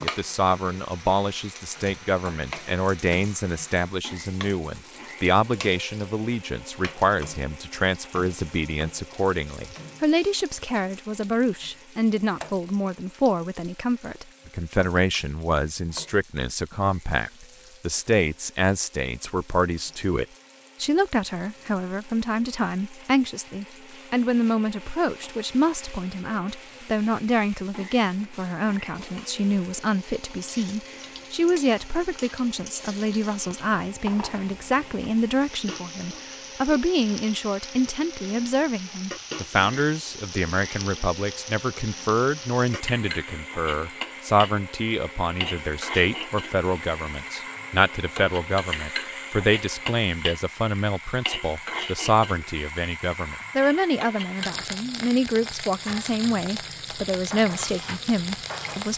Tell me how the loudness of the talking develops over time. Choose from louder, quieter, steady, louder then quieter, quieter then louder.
steady.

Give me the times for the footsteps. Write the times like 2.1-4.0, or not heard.
not heard.